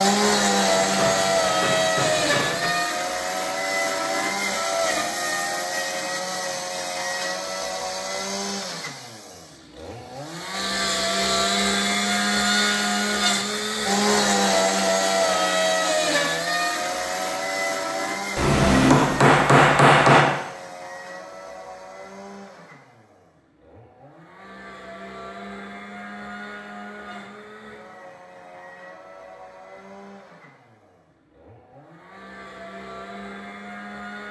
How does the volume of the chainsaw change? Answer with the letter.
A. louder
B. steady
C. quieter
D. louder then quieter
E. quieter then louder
C.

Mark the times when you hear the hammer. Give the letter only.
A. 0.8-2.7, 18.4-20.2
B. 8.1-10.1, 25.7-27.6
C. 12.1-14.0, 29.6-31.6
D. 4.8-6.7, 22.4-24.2
A.